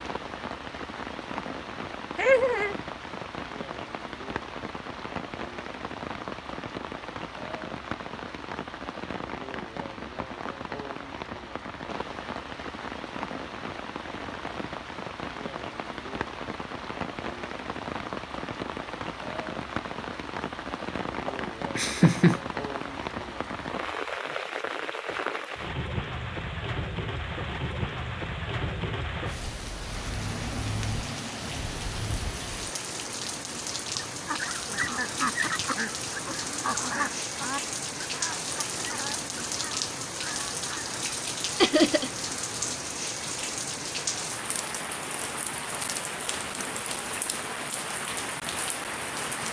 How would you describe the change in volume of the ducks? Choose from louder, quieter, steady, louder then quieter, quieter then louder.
quieter.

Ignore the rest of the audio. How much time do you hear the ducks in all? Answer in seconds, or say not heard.
7 s.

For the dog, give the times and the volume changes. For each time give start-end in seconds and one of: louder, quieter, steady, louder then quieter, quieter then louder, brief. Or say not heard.
not heard.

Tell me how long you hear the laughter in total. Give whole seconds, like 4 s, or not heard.
2 s.